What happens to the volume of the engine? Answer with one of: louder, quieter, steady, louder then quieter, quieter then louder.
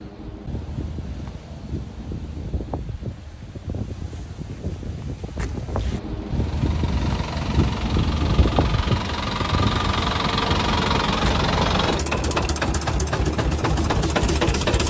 louder.